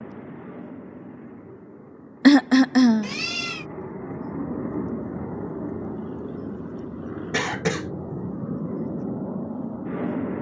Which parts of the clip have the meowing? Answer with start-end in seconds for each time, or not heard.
3.0-3.6.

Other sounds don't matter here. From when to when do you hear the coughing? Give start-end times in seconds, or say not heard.
2.2-3.1, 7.3-7.8.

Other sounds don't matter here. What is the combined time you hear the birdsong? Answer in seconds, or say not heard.
not heard.